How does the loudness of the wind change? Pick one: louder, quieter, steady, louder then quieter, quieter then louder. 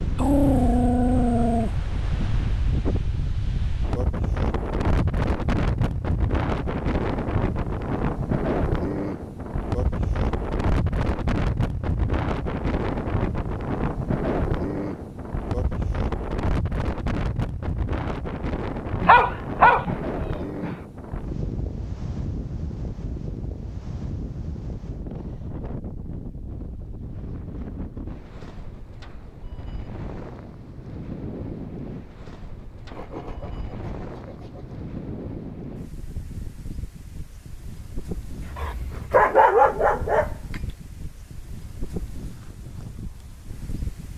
quieter.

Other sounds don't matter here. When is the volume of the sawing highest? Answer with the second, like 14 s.
33 s.